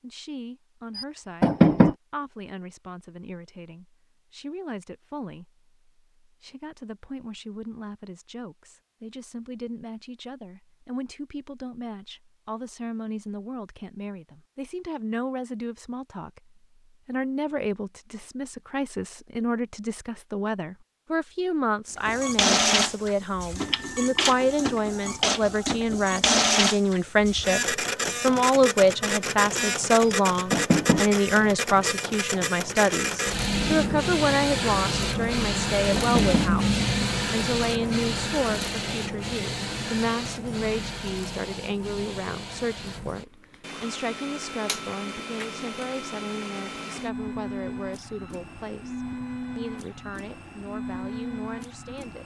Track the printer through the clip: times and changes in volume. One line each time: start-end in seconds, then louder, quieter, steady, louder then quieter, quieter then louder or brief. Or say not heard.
21.9-52.2 quieter.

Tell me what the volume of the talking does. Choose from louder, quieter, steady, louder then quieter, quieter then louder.
louder then quieter.